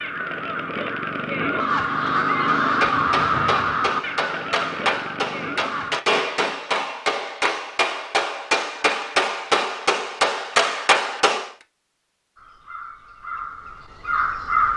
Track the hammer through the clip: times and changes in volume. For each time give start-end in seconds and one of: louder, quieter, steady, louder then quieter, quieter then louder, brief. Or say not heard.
2.6-11.5 louder.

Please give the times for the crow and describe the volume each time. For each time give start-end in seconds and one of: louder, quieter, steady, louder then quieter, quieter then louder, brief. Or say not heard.
0.0-6.0 louder then quieter
12.3-14.7 brief.